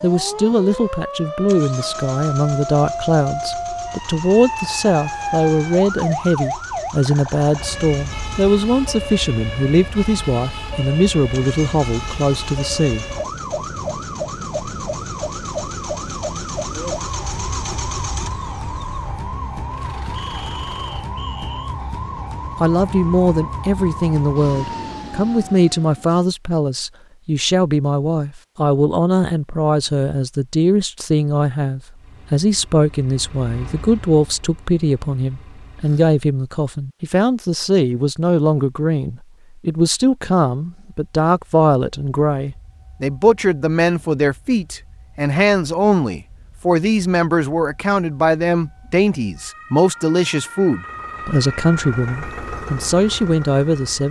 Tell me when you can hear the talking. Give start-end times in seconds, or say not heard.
0.0-13.1, 22.6-54.0.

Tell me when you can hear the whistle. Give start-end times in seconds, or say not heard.
20.1-21.8.